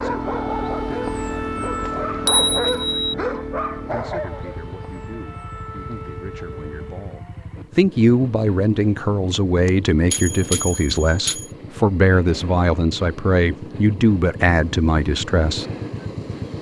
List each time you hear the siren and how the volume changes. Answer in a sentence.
The siren can be heard from 0.0 to 7.2 s, getting quieter.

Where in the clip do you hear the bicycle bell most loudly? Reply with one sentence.
The loudest moment of the bicycle bell is at 2 seconds.